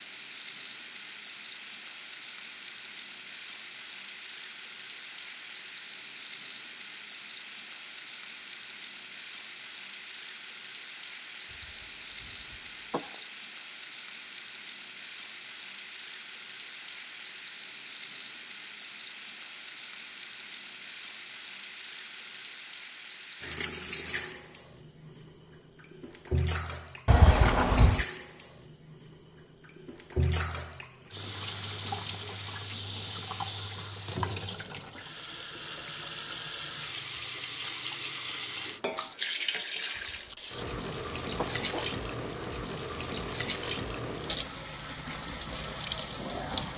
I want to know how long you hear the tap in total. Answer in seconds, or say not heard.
47 s.